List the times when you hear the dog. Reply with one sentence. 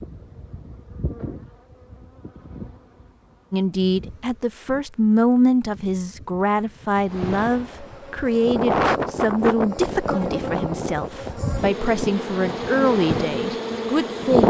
The dog can't be heard in this clip.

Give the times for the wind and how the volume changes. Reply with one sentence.
The wind can be heard from 7.1 to 14.4 s, getting quieter.